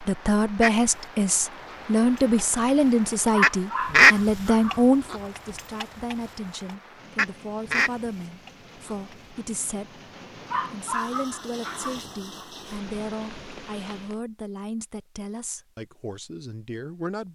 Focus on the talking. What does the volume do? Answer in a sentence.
The volume of the talking goes down.